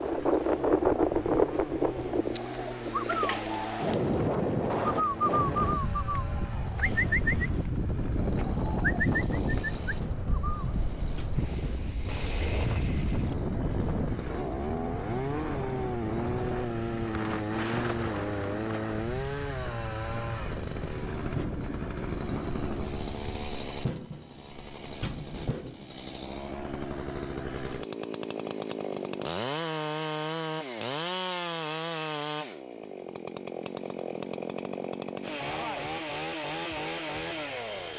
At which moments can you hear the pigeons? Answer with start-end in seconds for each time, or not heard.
2.1-10.7.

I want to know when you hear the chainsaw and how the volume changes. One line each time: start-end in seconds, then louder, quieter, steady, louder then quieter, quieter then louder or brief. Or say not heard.
0.0-37.9 louder.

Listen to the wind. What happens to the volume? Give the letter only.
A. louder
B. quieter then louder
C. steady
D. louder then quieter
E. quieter
E.